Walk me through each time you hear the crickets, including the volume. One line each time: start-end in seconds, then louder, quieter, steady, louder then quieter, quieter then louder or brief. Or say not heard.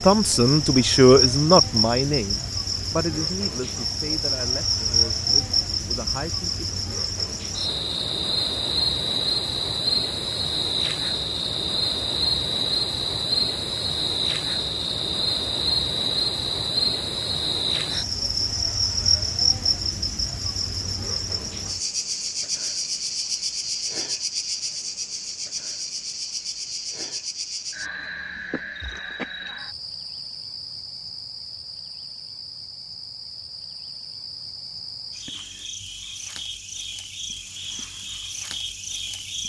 0.0-39.4 quieter.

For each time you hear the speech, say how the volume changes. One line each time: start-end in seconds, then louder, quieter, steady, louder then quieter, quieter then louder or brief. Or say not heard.
0.0-6.7 quieter.